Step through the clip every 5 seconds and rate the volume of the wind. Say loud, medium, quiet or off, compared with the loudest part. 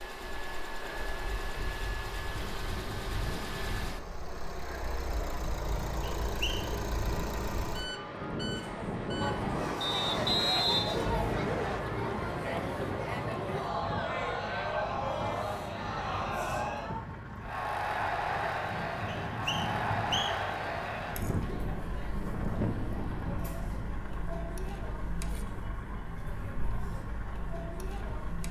medium, loud, loud, loud, loud, off.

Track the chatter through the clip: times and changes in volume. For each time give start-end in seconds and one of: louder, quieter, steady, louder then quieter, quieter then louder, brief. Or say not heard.
9.2-28.4 quieter.